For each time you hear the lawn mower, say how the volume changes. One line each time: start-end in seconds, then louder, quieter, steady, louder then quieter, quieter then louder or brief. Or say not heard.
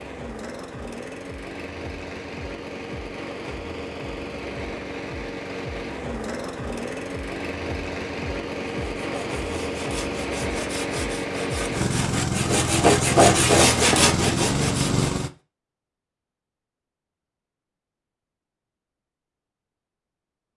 0.0-15.3 louder.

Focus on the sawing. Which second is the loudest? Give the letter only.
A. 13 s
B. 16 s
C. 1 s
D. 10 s
A.